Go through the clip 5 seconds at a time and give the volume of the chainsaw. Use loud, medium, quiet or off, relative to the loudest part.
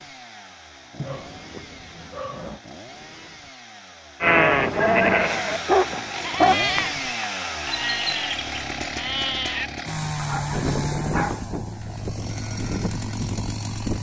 quiet, loud, loud.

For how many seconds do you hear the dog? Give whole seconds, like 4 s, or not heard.
5 s.